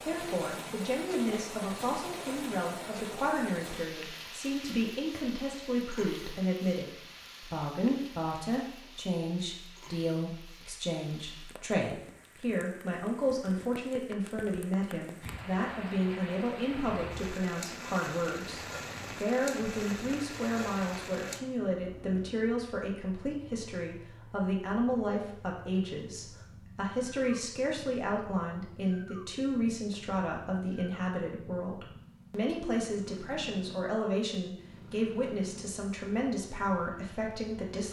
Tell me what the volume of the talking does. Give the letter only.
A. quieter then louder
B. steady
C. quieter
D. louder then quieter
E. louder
B.